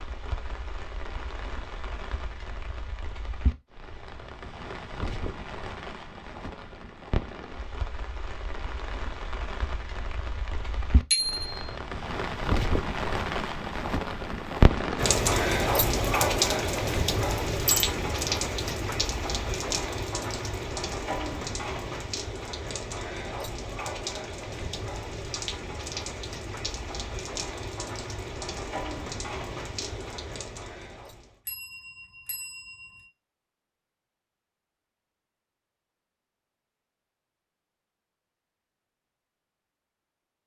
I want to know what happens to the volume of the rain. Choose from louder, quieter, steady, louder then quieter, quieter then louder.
louder then quieter.